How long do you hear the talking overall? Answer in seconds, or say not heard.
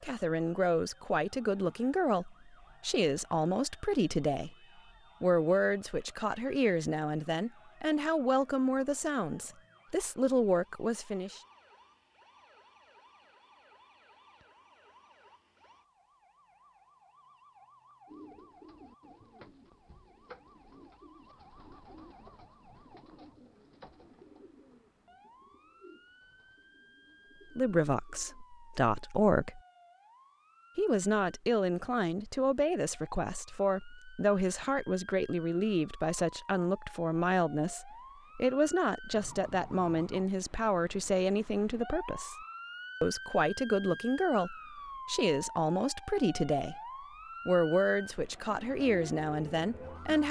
31 s.